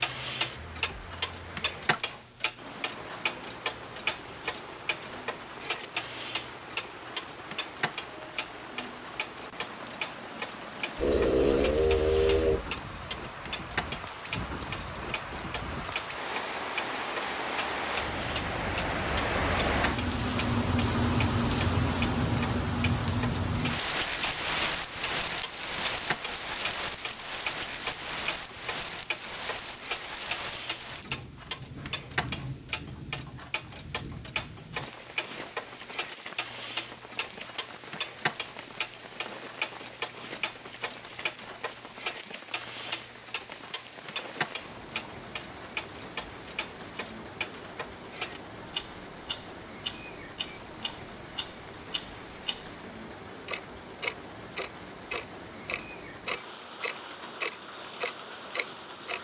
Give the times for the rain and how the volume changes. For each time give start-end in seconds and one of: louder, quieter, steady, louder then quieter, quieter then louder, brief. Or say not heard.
0.0-59.1 louder then quieter.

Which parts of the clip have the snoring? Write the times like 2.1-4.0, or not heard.
10.9-12.7.